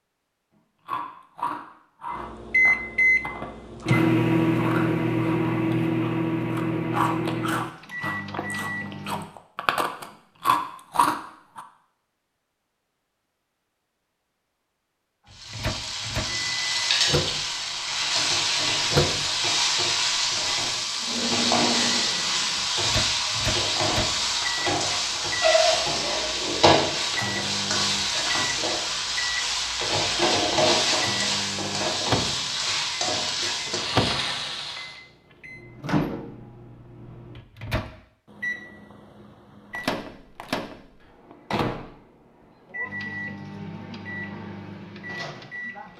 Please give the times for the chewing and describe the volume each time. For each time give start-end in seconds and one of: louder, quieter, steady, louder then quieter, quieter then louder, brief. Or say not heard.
0.8-11.7 louder.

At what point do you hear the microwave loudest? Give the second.
4 s.